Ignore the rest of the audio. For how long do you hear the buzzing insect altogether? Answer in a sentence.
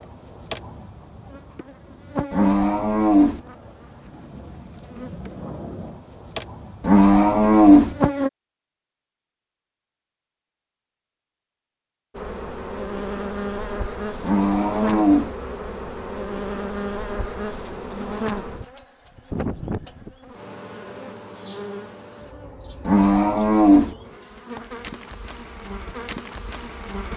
The buzzing insect can be heard for 23 seconds in total.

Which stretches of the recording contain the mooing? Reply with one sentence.
The mooing can be heard from 2.3 to 3.4 s, from 6.8 to 8.0 s, from 14.2 to 15.3 s and from 22.9 to 23.9 s.